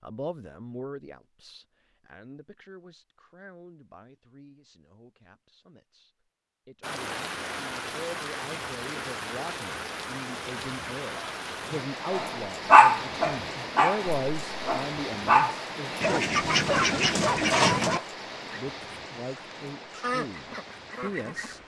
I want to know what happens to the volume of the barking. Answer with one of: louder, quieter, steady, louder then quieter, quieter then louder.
quieter.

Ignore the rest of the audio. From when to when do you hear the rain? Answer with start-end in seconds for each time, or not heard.
6.8-21.6.